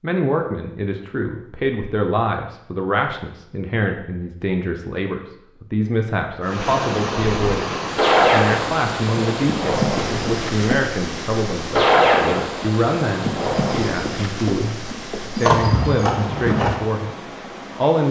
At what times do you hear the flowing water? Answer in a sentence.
You can hear the flowing water from 6.4 to 18.0 s.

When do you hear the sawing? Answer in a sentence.
You can't hear the sawing here.